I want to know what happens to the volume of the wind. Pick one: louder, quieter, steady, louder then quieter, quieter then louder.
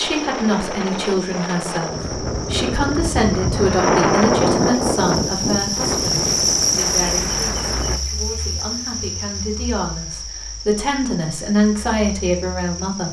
louder then quieter.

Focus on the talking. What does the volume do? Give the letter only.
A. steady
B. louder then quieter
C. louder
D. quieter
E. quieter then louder
E.